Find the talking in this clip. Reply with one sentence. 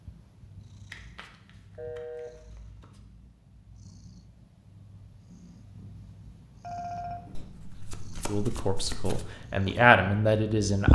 You can hear the talking from 8.2 to 10.9 s.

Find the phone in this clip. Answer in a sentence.
The phone can be heard from 1.8 to 2.3 s and from 6.6 to 7.5 s.